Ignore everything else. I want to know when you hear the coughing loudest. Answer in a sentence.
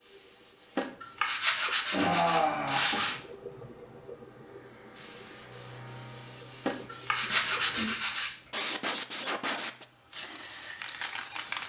The loudest moment of the coughing is at 2 seconds.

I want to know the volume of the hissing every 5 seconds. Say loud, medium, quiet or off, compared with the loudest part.
quiet, loud, loud.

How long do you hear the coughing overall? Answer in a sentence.
You can hear the coughing for 2 seconds altogether.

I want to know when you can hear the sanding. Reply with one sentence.
The sanding can be heard from 0.8 to 3.2 s and from 6.7 to 8.3 s.